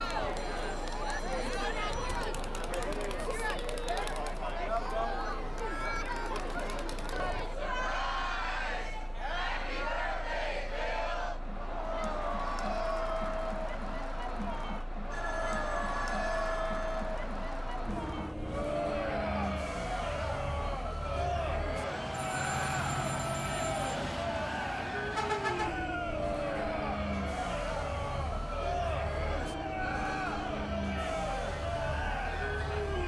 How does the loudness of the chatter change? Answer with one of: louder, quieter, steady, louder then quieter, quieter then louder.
steady.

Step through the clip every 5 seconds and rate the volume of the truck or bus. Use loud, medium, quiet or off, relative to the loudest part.
medium, medium, medium, loud, loud, loud, loud.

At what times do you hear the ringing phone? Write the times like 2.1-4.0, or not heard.
0.3-2.2, 15.1-17.1, 22.1-23.8.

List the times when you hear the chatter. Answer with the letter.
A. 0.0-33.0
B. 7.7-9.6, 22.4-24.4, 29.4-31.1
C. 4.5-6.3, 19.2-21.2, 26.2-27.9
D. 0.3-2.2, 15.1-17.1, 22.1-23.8
A.